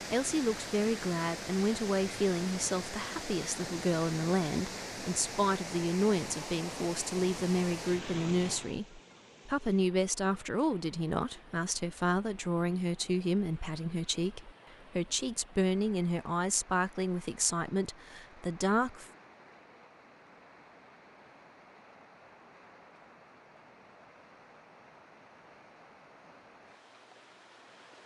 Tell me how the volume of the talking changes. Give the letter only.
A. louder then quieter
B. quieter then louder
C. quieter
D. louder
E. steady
E.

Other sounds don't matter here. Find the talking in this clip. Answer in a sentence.
You can hear the talking from 0.1 to 19.1 s.